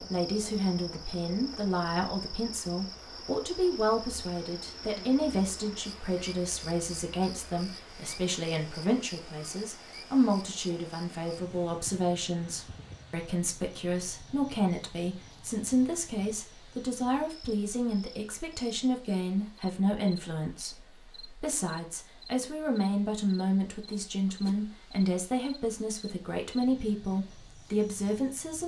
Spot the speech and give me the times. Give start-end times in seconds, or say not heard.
0.0-28.6.